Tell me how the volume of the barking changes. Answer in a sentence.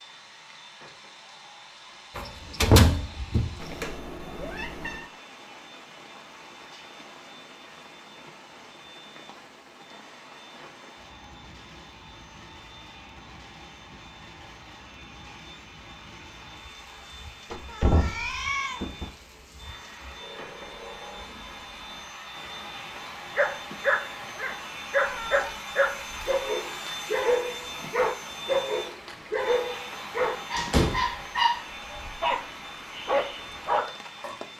The loudness of the barking stays about the same.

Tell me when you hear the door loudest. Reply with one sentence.
The loudest moment of the door is at 3 seconds.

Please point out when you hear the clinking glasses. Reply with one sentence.
The clinking glasses can't be heard in this clip.